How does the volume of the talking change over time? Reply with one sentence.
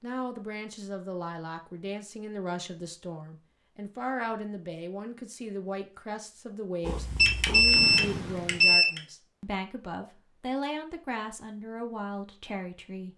The loudness of the talking stays about the same.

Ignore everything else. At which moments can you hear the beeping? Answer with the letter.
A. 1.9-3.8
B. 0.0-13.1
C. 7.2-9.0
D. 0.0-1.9
C.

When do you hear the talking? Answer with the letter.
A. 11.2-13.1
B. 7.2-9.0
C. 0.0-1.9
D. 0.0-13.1
D.